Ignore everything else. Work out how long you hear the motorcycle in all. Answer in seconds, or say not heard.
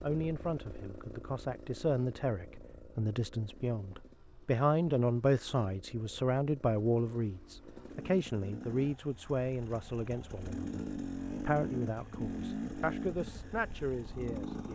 15 s.